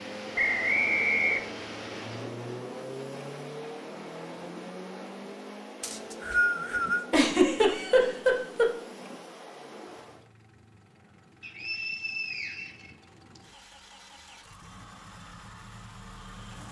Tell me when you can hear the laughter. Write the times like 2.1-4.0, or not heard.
7.1-8.7.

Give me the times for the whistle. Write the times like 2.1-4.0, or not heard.
0.3-1.5, 5.8-7.0, 11.4-13.4.